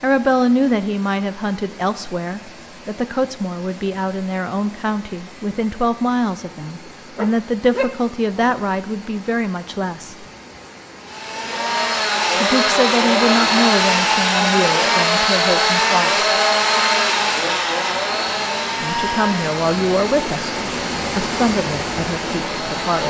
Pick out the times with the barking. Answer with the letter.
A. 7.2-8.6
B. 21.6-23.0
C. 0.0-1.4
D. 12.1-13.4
A.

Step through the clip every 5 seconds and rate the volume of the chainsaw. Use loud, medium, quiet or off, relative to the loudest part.
off, off, loud, loud, medium.